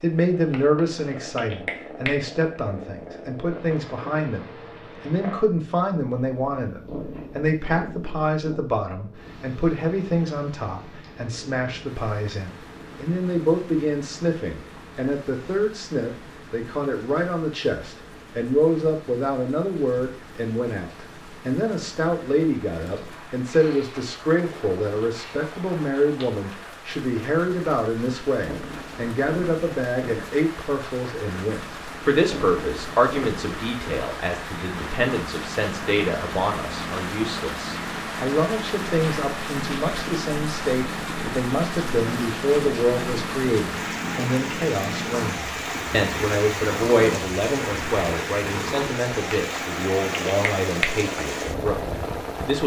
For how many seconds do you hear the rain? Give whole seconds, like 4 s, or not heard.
41 s.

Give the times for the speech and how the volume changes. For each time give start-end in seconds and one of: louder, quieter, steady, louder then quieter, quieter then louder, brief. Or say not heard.
0.0-52.6 steady.